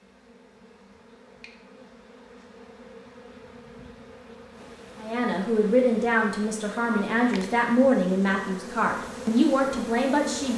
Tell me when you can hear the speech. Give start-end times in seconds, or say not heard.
5.0-10.5.